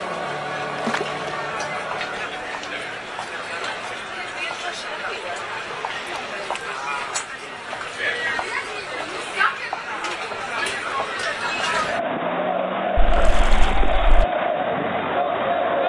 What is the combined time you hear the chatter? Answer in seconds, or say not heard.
16 s.